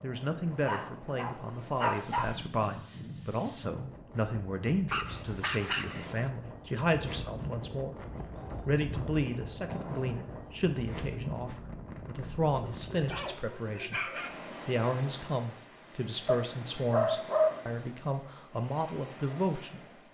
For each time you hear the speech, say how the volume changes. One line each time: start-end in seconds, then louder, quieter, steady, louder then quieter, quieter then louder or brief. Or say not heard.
0.0-20.0 steady.